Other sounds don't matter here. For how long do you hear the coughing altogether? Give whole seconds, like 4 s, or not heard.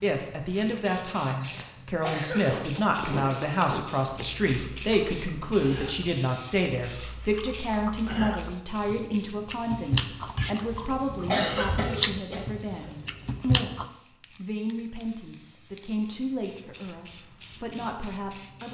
3 s.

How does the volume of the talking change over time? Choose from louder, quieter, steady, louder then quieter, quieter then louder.
quieter.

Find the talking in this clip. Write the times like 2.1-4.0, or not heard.
0.0-18.7.